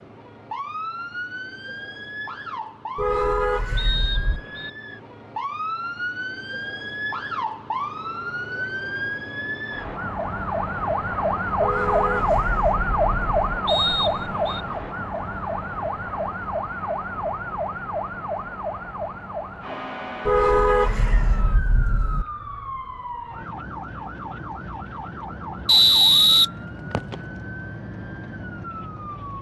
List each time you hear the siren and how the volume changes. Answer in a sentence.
The siren can be heard from 0.0 to 29.3 s, getting louder then quieter.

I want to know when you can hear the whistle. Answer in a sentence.
You can hear the whistle from 3.8 to 4.7 s, from 13.7 to 14.6 s and from 25.6 to 27.1 s.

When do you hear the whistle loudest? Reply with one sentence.
The loudest moment of the whistle is at 26 seconds.